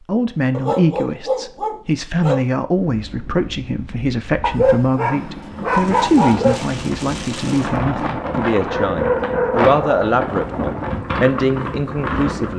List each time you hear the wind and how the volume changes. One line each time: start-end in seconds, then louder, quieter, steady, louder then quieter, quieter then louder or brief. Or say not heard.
2.8-12.5 louder.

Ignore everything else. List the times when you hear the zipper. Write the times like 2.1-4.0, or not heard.
not heard.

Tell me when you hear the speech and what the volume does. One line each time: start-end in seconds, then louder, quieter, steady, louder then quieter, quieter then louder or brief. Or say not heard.
0.1-12.5 steady.